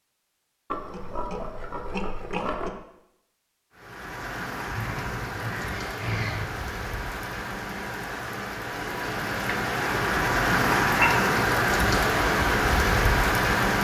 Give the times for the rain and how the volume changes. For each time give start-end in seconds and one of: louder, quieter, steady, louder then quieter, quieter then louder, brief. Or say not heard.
3.7-13.8 louder.